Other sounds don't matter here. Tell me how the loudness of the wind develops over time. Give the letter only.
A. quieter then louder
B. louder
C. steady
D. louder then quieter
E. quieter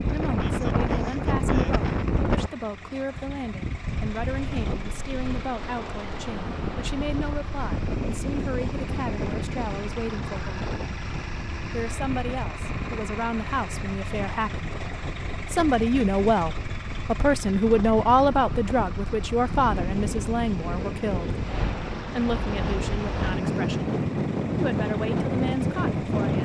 A.